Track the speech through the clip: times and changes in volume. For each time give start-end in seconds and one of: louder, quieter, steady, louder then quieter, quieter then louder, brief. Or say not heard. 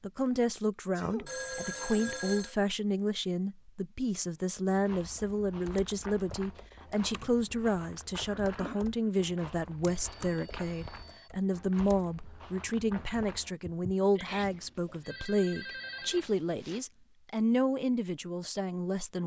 0.0-19.2 steady.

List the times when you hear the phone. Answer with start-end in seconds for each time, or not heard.
1.2-2.5, 9.8-11.3, 14.2-16.9.